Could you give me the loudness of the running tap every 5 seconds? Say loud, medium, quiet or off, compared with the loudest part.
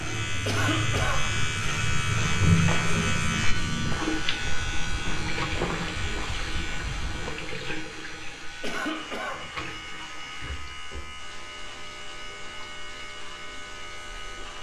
loud, medium, quiet.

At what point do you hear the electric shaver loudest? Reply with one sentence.
The volume of the electric shaver peaks at 3 seconds.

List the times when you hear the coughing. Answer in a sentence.
You can hear the coughing from 0.5 to 1.3 s and from 8.6 to 9.5 s.